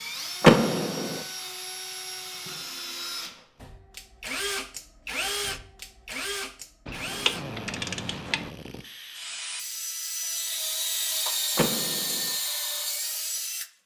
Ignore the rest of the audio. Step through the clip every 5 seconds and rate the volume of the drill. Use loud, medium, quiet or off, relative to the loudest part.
medium, medium, loud.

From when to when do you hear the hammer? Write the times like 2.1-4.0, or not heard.
not heard.